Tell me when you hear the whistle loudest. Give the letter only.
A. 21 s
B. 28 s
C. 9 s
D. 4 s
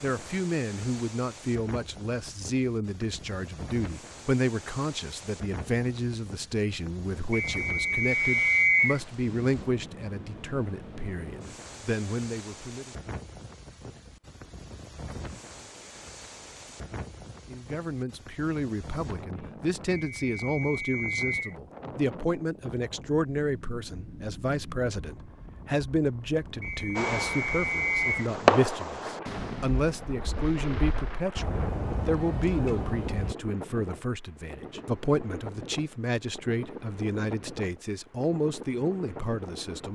C.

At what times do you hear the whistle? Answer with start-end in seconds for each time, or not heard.
7.3-9.0, 19.9-21.6, 26.6-28.3.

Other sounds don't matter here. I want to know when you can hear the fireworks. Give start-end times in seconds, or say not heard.
26.9-33.4.